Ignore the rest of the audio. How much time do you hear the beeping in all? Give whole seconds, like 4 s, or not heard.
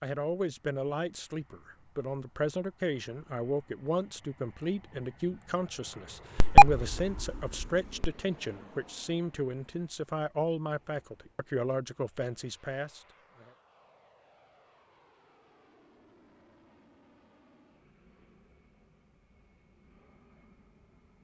2 s.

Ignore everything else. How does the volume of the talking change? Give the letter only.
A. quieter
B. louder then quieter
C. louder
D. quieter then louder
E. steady
E.